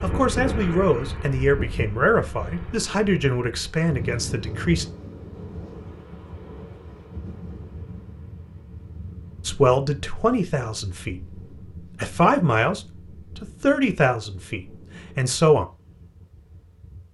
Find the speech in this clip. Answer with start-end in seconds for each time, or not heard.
0.0-4.8, 9.4-11.4, 12.0-15.7.